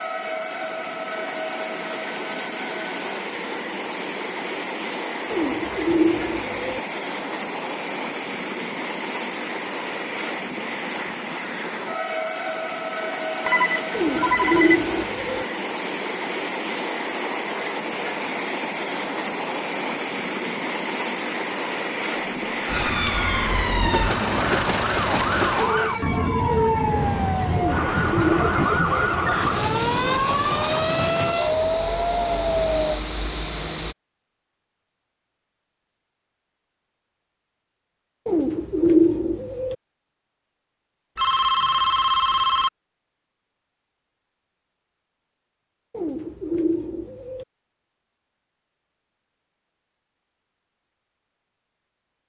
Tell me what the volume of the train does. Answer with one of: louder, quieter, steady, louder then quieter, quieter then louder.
steady.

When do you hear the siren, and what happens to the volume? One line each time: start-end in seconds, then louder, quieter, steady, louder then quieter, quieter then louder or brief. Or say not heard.
22.6-33.0 steady.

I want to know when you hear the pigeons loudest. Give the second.
39 s.